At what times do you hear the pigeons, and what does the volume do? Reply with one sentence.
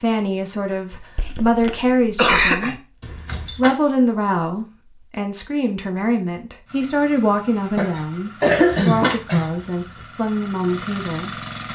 You can't hear the pigeons here.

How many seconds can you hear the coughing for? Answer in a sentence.
You can hear the coughing for 4 seconds altogether.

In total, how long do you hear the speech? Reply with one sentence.
You can hear the speech for 11 seconds altogether.